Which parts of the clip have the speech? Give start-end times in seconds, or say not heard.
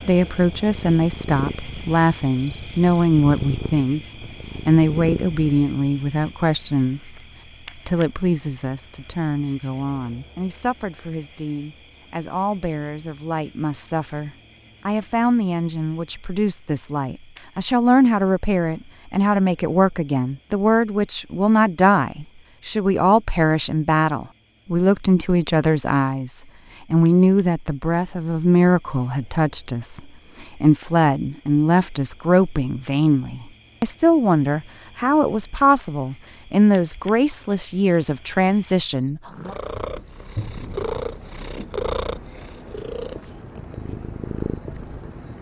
0.1-4.0, 4.7-39.5.